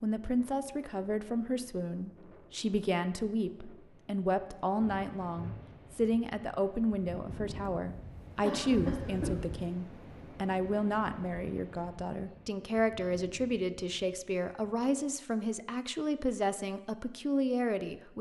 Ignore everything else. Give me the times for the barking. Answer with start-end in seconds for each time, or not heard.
not heard.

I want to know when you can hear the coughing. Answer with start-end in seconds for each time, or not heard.
8.4-9.3.